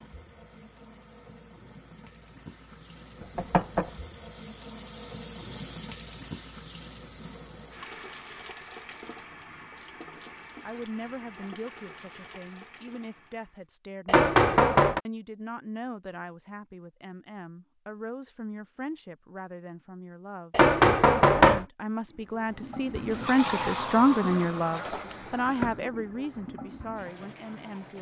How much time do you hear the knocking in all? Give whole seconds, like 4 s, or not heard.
3 s.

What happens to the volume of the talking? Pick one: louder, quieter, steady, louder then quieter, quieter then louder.
louder then quieter.